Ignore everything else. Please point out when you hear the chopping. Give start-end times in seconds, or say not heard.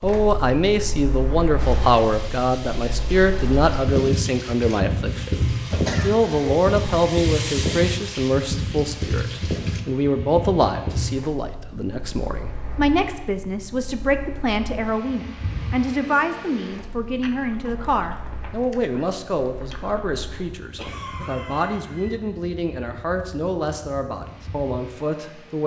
not heard.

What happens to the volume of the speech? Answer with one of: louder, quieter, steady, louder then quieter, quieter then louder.
quieter.